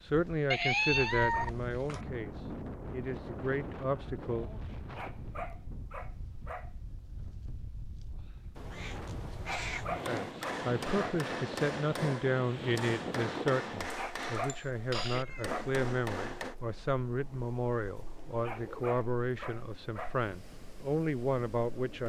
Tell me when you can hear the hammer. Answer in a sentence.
You can hear the hammer from 9.9 to 16.6 s.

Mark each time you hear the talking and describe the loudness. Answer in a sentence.
The talking can be heard from 0.0 to 4.5 s, getting quieter then louder; and from 10.1 to 22.0 s, at a steady volume.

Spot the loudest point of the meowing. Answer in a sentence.
The volume of the meowing peaks at 1 second.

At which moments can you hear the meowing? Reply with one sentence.
You can hear the meowing from 0.5 to 2.0 s, from 8.6 to 10.1 s and from 15.1 to 15.6 s.